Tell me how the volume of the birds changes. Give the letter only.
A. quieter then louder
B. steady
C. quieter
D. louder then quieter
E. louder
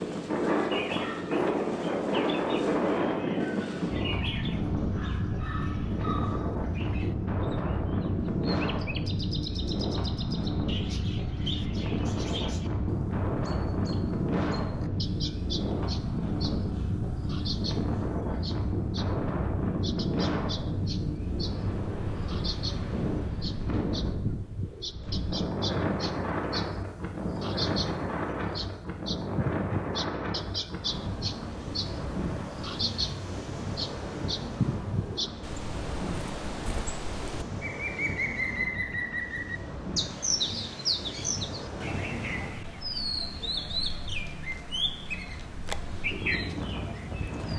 E.